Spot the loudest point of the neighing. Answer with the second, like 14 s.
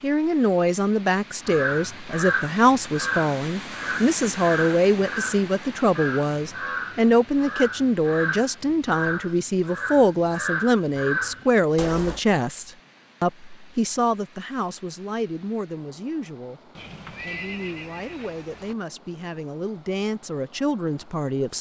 17 s.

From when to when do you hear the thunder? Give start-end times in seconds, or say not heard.
not heard.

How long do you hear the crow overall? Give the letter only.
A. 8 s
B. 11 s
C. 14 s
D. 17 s
B.